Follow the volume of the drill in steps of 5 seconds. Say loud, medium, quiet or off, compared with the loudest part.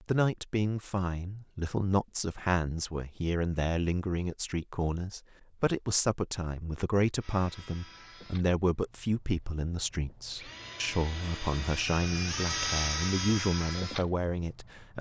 off, quiet, loud.